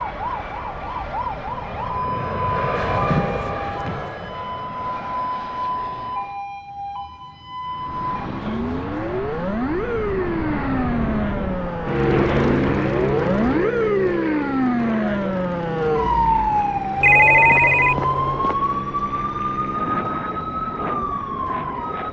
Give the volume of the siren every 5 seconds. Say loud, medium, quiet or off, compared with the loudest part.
medium, medium, loud, loud, medium.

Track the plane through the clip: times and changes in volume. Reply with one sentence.
The plane can be heard from 0.0 to 6.5 s, getting louder then quieter; and from 7.6 to 22.0 s, getting louder then quieter.